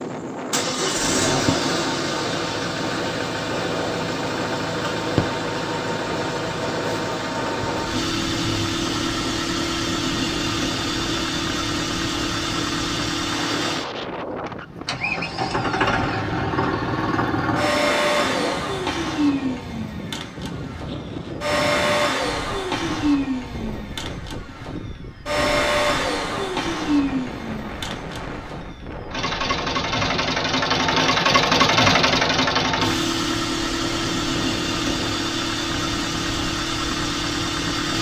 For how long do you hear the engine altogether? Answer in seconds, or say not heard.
38 s.